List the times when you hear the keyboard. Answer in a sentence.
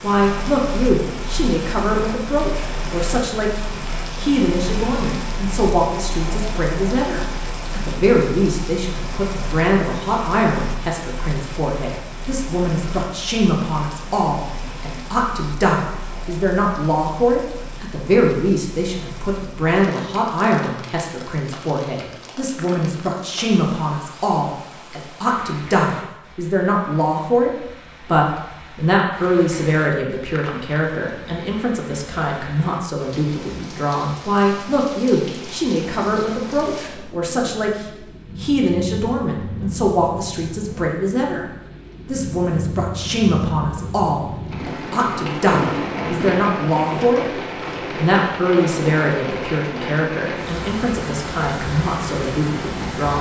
You can't hear the keyboard here.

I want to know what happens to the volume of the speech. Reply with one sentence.
The volume of the speech stays about the same.